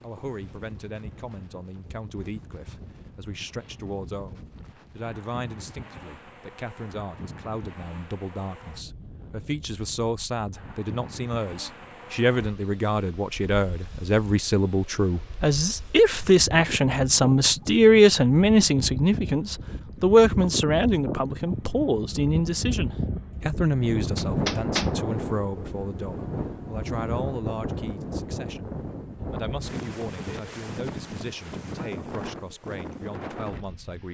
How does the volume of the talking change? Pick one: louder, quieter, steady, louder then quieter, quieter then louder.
louder then quieter.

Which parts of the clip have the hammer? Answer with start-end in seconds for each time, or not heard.
24.1-24.9.